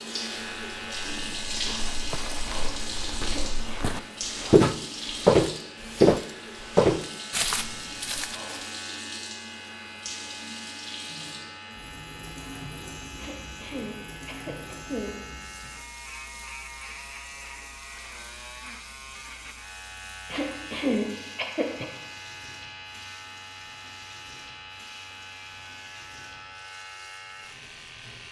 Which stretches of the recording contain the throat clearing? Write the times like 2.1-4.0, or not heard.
3.2-3.9, 13.2-15.7, 20.3-21.9.